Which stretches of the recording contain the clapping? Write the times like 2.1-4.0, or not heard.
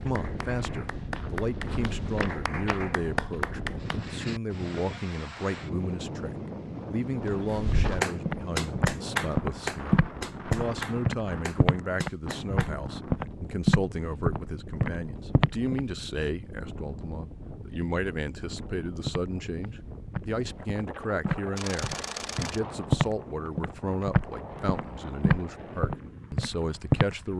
0.0-4.0, 7.5-12.7.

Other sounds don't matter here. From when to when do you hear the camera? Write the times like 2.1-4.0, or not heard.
21.6-22.6.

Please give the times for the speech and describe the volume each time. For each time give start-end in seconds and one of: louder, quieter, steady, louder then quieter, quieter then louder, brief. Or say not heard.
0.0-27.3 steady.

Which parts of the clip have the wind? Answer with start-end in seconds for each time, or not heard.
0.0-27.3.